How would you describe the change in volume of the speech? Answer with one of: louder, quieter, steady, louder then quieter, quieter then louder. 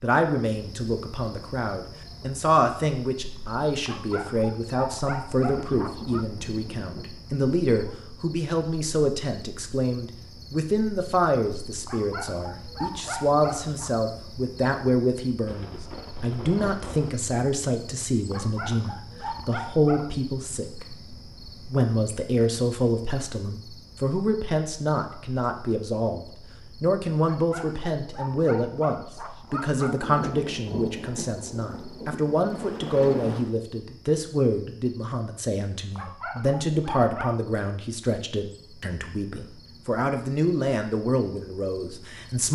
steady.